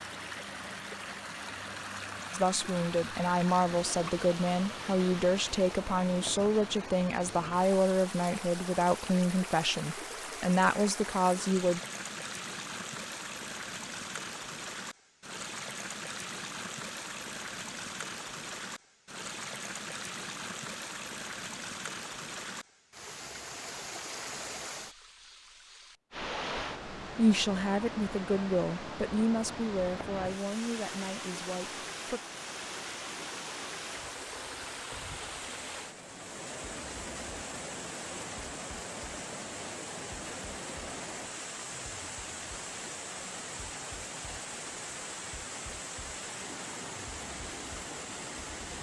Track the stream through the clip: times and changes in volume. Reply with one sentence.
The stream can be heard from 0.0 to 48.7 s, at a steady volume.